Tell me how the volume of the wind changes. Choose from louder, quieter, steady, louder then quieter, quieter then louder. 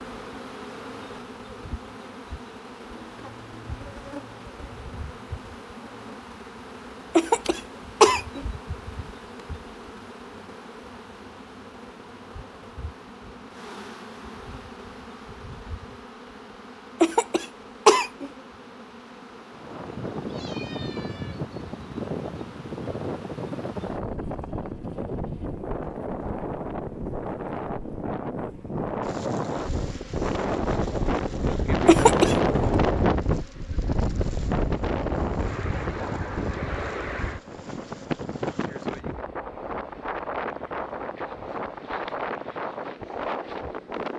louder then quieter.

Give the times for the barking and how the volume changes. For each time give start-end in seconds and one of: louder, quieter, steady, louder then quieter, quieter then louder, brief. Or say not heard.
not heard.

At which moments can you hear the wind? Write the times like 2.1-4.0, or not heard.
19.5-44.1.